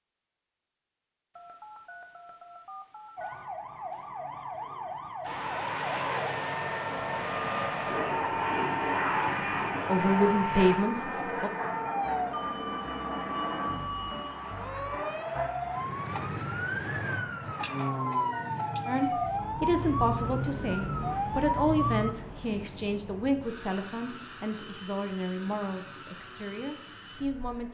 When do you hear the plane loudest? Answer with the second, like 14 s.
9 s.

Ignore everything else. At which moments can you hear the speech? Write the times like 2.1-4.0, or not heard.
9.8-11.5, 18.9-27.6.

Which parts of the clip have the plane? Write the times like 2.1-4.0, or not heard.
5.2-27.6.